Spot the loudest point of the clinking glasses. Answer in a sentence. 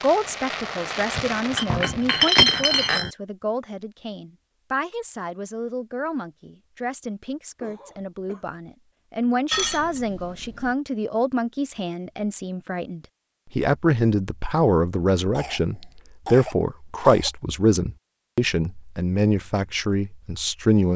The loudest moment of the clinking glasses is at 2 seconds.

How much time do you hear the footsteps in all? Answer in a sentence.
You can't hear the footsteps here.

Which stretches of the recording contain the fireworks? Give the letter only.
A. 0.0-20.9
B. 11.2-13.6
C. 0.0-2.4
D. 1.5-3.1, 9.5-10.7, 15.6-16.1
C.